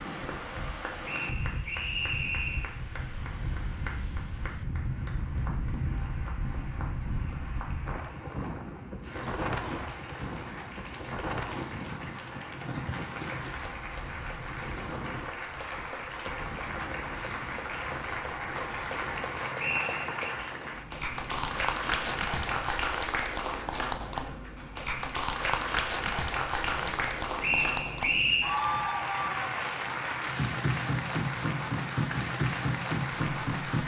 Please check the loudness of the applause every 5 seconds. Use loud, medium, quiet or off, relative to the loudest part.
quiet, quiet, medium, medium, loud, loud, loud.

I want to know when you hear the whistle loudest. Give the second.
28 s.